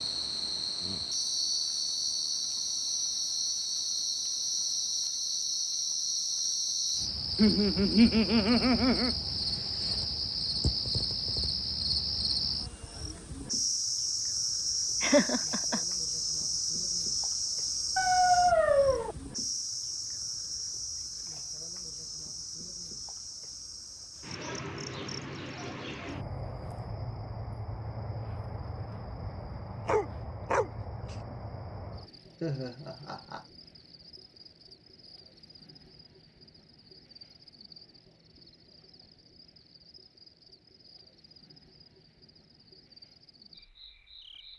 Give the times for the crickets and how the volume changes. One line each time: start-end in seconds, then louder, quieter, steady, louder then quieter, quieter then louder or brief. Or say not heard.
0.0-44.5 quieter.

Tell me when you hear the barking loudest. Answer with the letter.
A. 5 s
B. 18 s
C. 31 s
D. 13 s
B.